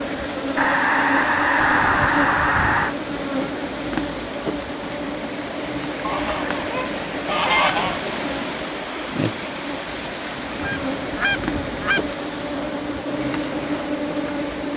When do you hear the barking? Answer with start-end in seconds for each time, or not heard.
not heard.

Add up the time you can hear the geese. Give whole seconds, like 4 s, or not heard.
6 s.